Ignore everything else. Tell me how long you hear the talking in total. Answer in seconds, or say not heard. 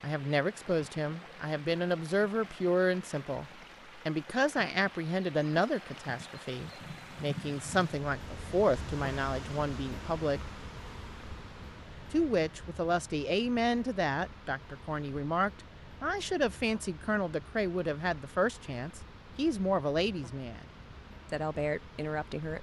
20 s.